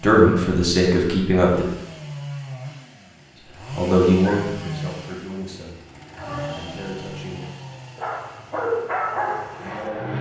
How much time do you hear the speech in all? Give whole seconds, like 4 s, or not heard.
5 s.